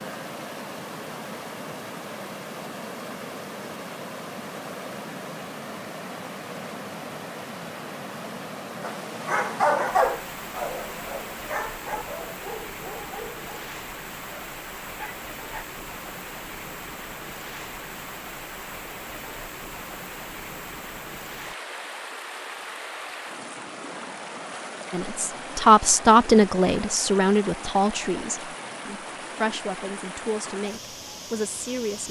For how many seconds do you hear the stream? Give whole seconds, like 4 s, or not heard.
32 s.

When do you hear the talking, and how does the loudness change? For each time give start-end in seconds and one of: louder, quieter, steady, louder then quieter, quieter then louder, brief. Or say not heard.
24.9-32.0 quieter.